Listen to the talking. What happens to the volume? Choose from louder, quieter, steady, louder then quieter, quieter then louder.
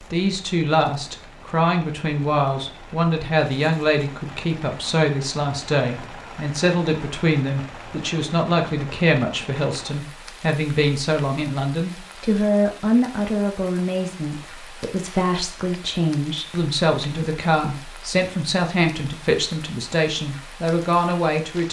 steady.